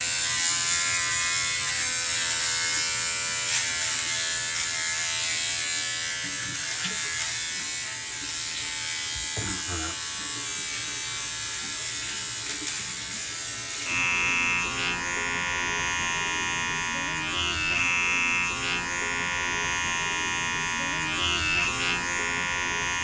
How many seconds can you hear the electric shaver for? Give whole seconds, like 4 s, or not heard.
23 s.